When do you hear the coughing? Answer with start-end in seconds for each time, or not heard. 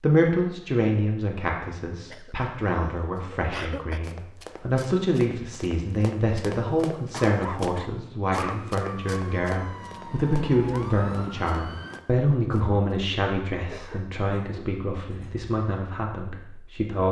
2.1-4.0, 7.1-8.7, 13.6-15.5.